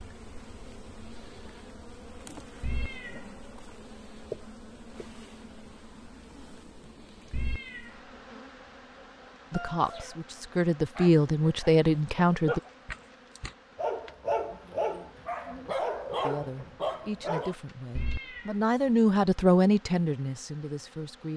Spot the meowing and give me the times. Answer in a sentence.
The meowing can be heard from 2.6 to 3.4 s, from 7.3 to 8.1 s and from 17.9 to 18.6 s.